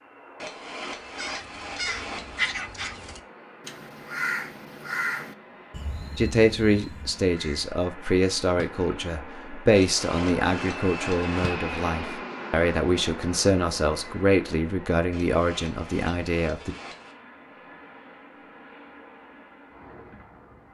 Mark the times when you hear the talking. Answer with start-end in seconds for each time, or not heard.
6.2-16.8.